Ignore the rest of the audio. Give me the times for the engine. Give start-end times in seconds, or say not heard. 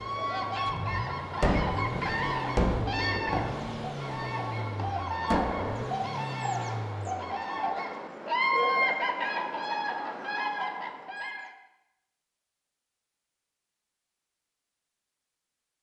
0.0-7.3.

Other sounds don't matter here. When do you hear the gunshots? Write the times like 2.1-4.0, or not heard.
1.4-5.9.